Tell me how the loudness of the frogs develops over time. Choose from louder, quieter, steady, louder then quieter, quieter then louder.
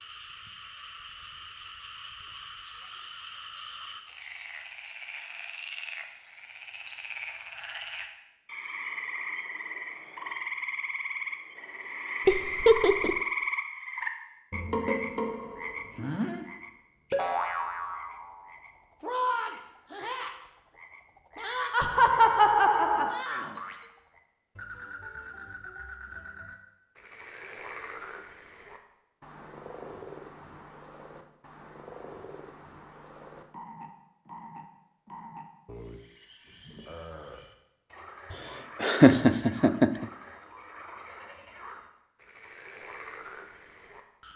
louder then quieter.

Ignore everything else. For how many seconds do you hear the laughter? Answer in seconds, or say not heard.
4 s.